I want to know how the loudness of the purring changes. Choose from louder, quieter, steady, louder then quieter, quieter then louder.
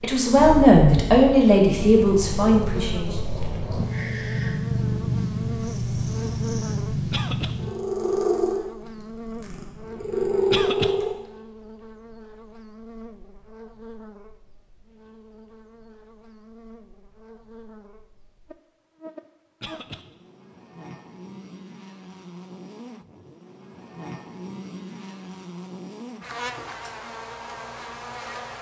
louder.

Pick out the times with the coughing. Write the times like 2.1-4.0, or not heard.
7.1-7.5, 10.5-10.9, 19.6-20.1.